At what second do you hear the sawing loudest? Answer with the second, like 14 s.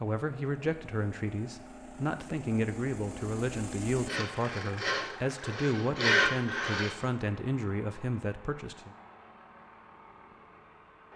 6 s.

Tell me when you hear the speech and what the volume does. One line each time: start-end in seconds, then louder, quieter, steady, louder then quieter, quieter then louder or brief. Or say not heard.
0.0-8.9 steady.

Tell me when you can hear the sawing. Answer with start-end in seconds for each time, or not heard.
4.0-7.0.